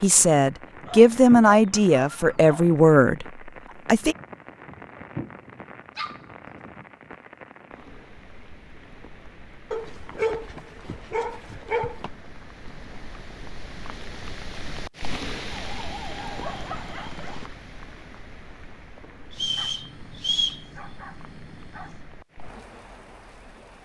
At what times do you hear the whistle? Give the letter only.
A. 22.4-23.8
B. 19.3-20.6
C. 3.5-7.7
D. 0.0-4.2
B.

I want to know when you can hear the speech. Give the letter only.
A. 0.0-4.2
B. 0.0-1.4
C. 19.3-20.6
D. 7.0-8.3
A.